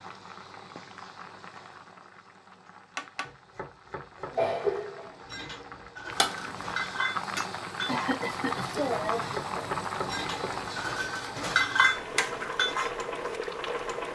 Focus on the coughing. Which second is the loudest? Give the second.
5 s.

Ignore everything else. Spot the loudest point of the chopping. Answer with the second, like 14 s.
10 s.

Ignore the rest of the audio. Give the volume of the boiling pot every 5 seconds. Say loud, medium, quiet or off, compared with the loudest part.
medium, loud, loud.